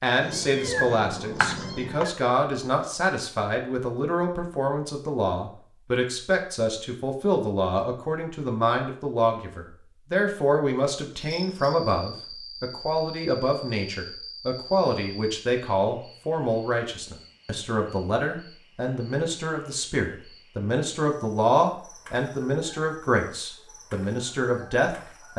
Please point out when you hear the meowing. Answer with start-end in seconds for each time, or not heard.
0.2-2.1.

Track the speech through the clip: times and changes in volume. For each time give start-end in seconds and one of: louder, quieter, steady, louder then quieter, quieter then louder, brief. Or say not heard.
0.0-25.3 steady.